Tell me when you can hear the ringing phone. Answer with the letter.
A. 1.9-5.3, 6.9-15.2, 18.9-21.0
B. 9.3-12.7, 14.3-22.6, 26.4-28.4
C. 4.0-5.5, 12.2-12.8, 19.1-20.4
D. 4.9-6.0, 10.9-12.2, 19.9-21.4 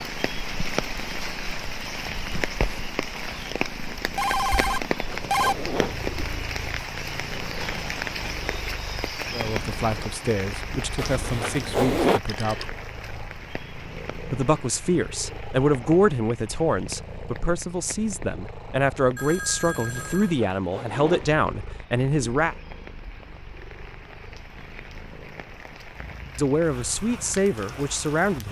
C.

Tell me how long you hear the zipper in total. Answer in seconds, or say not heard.
4 s.